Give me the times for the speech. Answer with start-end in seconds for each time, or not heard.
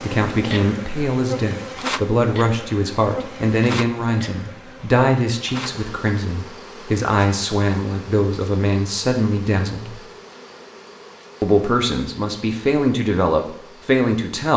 0.0-10.0, 11.4-14.5.